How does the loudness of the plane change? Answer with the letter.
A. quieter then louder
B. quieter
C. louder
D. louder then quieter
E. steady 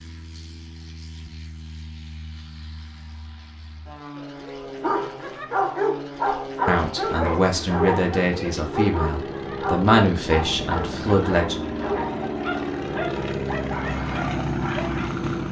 C.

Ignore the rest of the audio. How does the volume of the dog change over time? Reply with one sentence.
The loudness of the dog goes down.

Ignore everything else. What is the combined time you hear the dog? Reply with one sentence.
The dog can be heard for 10 seconds in total.